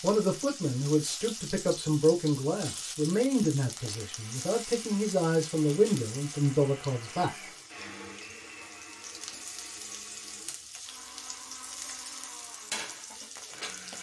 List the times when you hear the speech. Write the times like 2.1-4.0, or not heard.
0.0-7.5.